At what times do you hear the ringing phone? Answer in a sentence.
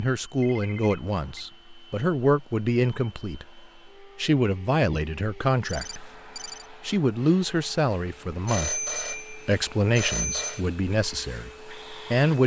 The ringing phone can be heard from 0.3 to 1.4 s, from 5.7 to 6.7 s and from 8.4 to 10.6 s.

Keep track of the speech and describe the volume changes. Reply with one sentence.
The volume of the speech stays about the same.